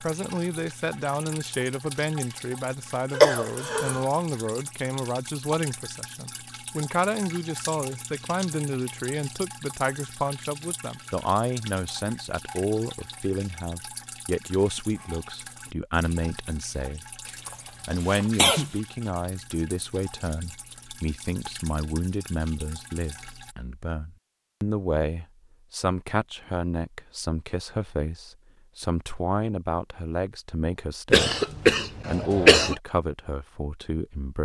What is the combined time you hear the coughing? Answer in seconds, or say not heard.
4 s.